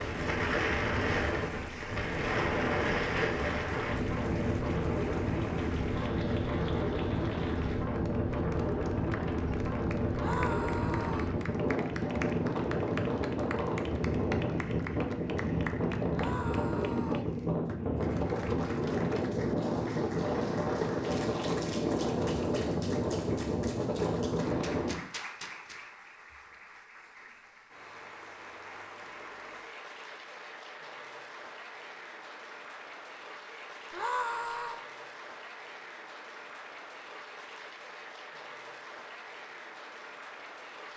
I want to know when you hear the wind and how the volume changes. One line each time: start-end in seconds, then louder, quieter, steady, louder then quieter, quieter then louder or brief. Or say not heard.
0.0-25.0 steady.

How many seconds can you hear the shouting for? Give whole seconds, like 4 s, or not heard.
3 s.